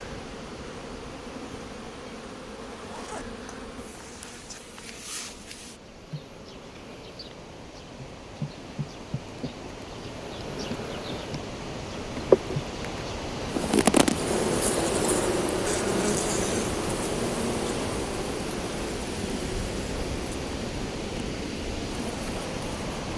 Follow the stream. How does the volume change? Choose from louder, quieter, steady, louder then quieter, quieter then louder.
louder.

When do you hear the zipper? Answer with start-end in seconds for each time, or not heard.
2.6-4.6.